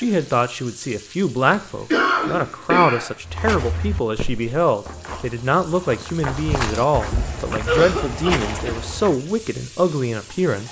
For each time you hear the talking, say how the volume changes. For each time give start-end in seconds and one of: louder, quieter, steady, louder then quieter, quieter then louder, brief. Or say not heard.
0.0-10.6 steady.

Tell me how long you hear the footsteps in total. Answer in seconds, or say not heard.
6 s.